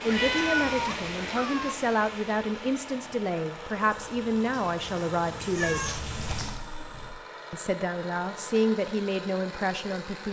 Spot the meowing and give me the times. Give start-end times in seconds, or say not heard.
0.1-1.8, 5.5-7.2.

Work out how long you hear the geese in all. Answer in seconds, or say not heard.
not heard.